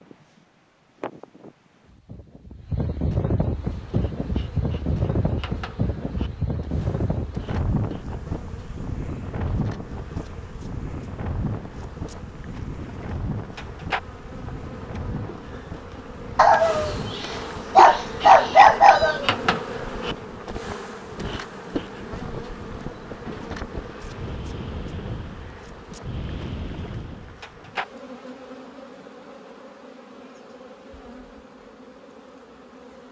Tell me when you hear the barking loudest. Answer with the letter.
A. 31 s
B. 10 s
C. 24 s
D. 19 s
D.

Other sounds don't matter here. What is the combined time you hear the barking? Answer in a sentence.
You can hear the barking for 3 seconds altogether.